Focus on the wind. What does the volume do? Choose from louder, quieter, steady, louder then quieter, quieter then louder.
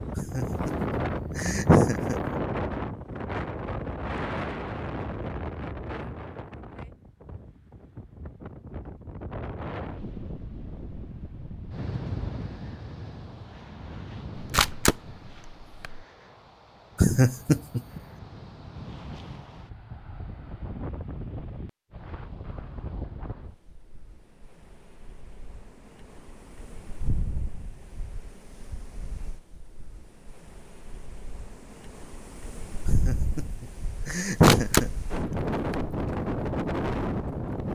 quieter then louder.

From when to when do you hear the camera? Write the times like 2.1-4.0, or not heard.
14.3-16.0, 34.2-36.0.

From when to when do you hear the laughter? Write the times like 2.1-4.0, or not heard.
0.1-2.2, 16.9-18.0, 32.9-34.9.